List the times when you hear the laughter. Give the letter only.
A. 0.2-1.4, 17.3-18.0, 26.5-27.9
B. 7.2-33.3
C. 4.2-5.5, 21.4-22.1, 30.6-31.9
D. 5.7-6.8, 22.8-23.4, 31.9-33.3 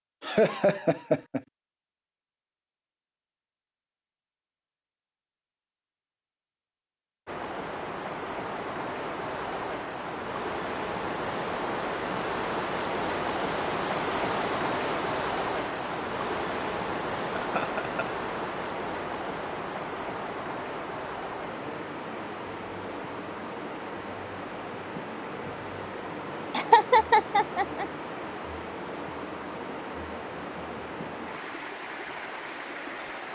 A.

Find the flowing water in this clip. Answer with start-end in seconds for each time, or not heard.
7.2-33.3.